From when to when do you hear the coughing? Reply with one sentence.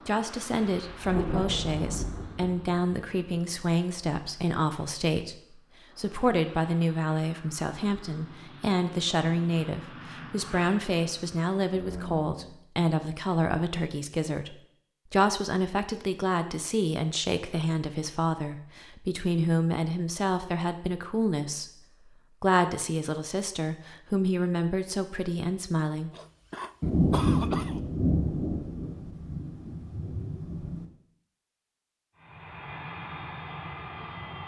You can hear the coughing from 26.1 to 27.8 s.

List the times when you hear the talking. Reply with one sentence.
The talking can be heard from 0.1 to 26.1 s.